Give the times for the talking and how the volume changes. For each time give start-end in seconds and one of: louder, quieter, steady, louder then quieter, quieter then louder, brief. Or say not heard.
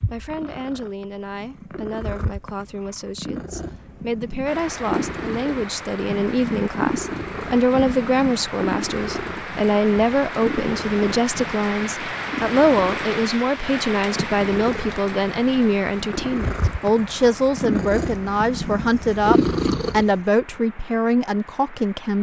0.1-22.1 louder.